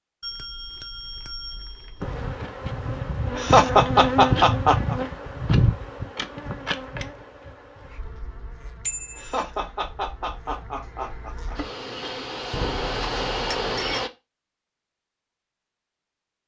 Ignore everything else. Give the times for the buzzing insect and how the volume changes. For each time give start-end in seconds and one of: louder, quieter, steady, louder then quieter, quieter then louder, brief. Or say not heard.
2.0-14.1 quieter then louder.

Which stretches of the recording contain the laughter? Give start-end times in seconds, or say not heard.
3.4-5.0, 9.2-11.6.